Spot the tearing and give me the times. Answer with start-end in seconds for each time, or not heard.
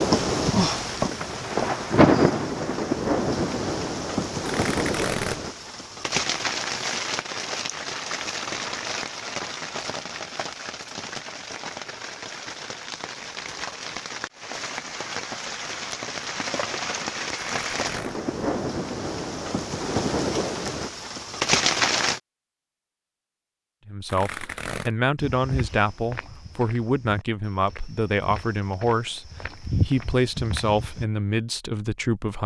4.5-5.4, 17.4-18.2, 24.1-24.9.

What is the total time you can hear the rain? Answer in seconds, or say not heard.
22 s.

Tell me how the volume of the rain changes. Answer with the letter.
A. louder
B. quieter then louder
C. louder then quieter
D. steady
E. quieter
B.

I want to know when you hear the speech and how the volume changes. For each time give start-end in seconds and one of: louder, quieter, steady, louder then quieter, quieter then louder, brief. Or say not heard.
23.9-32.4 steady.